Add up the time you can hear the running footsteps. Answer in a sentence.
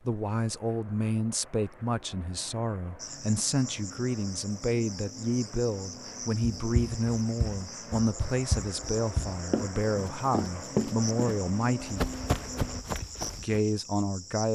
You can hear the running footsteps for 7 seconds altogether.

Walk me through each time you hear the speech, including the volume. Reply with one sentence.
The speech can be heard from 0.1 to 12.1 s, at a steady volume; and briefly from 13.3 to 14.5 s.